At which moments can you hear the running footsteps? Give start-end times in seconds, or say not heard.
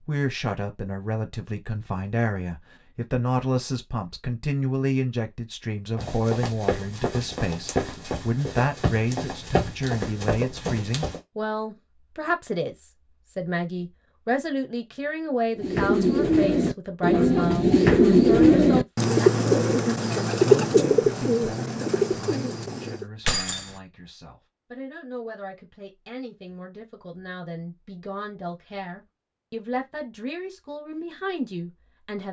6.0-11.2.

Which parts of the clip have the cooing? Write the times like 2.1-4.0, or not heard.
15.6-23.1.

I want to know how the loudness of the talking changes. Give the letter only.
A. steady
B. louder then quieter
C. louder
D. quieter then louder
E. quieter
E.